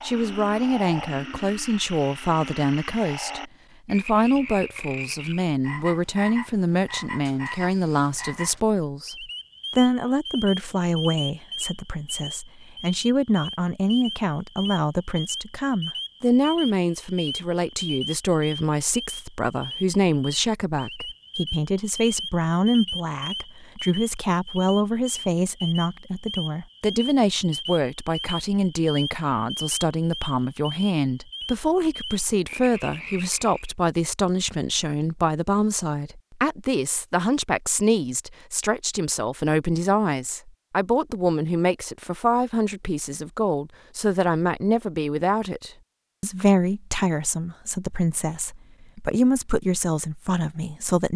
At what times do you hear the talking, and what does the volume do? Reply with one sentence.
You can hear the talking from 0.0 to 51.1 s, at a steady volume.